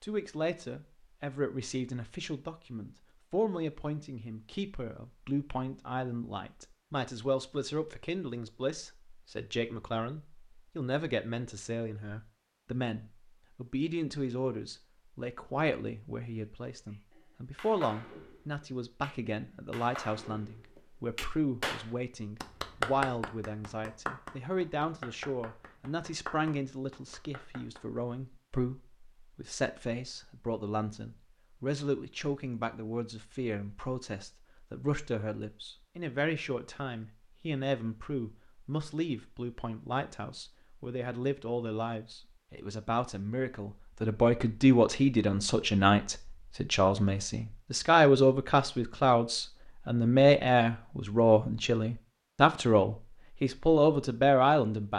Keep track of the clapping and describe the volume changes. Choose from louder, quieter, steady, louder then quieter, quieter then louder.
louder then quieter.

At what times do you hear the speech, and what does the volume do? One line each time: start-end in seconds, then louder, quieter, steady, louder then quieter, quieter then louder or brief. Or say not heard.
0.0-54.9 louder.